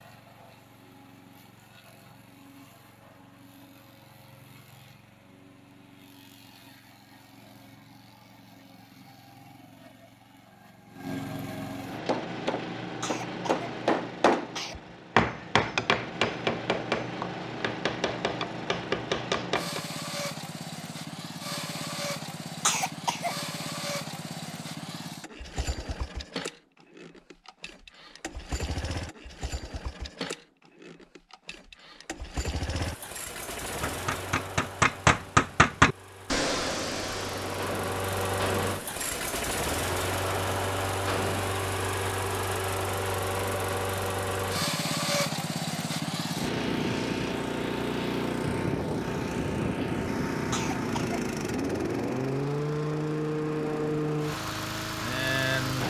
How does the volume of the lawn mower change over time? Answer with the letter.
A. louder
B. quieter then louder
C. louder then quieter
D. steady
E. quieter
A.